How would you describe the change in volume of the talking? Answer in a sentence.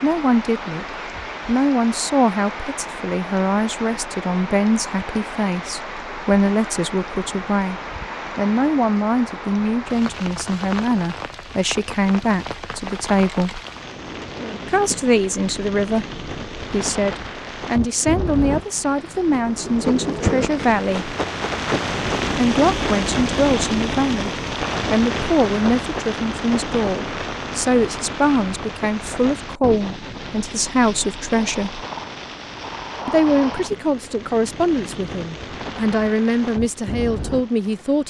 The volume of the talking stays about the same.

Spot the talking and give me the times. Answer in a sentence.
You can hear the talking from 0.0 to 13.6 s, from 14.7 to 21.1 s, from 22.3 to 31.8 s and from 33.0 to 38.0 s.